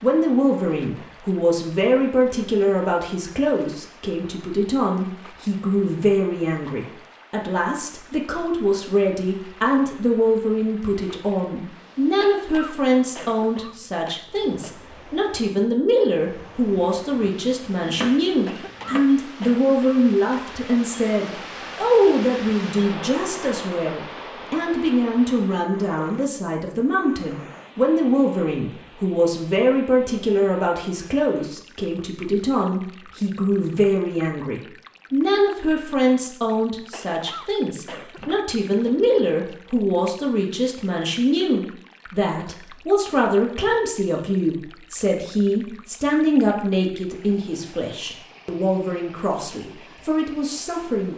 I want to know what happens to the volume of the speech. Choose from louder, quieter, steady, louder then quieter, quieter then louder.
steady.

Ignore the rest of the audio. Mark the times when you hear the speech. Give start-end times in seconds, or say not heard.
0.0-51.1.